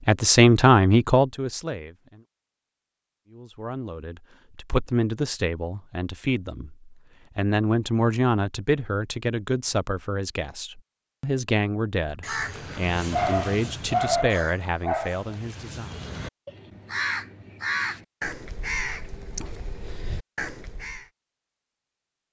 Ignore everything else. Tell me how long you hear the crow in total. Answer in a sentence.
The crow can be heard for 9 seconds in total.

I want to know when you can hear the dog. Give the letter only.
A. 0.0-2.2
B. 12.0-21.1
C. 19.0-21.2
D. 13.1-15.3
D.